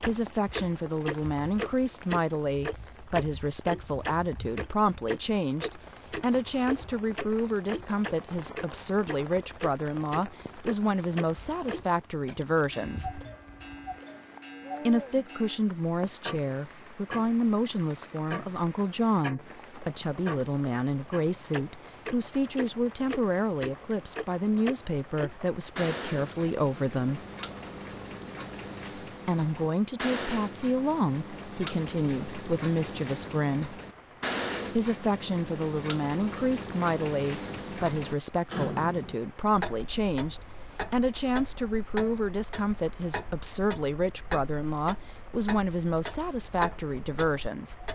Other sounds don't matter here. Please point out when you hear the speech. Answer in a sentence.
The speech can be heard from 0.1 to 13.2 s, from 14.8 to 27.2 s, from 29.2 to 33.8 s and from 34.7 to 47.8 s.